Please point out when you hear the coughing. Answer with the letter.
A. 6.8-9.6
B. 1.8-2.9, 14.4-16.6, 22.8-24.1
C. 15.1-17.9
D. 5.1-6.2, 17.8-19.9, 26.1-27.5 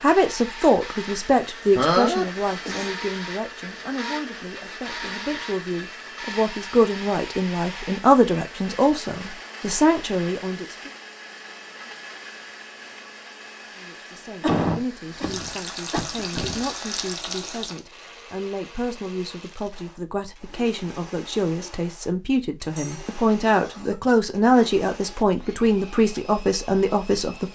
B.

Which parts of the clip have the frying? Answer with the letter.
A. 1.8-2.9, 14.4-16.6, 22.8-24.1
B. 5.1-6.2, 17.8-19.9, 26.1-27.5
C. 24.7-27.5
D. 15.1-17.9
D.